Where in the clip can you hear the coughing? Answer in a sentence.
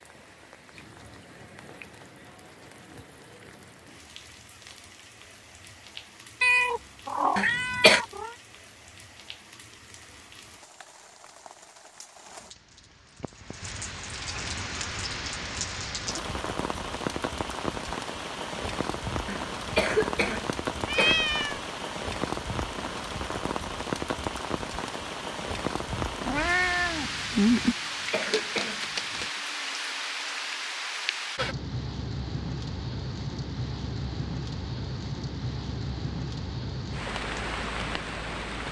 The coughing can be heard from 7.3 to 8.0 s, from 19.2 to 21.2 s and from 27.6 to 29.3 s.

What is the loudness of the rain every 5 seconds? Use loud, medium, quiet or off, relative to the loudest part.
quiet, quiet, medium, loud, loud, loud, loud, loud.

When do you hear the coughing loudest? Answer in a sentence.
The loudest moment of the coughing is at 8 seconds.